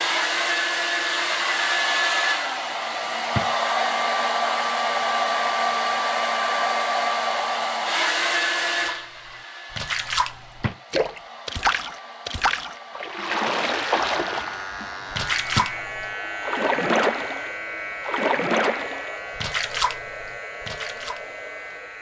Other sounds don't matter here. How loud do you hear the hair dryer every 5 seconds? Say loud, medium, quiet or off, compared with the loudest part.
loud, loud, quiet, quiet, quiet.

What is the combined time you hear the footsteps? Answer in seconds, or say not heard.
not heard.